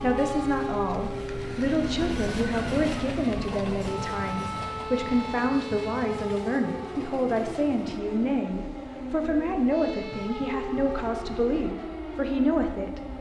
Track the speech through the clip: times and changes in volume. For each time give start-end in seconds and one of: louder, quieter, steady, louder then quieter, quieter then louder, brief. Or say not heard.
0.0-13.0 steady.